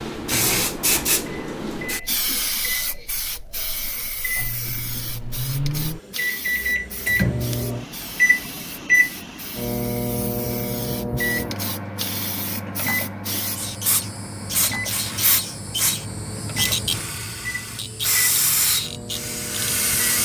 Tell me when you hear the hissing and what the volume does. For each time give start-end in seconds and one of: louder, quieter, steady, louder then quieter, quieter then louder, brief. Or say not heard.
0.0-20.2 quieter then louder.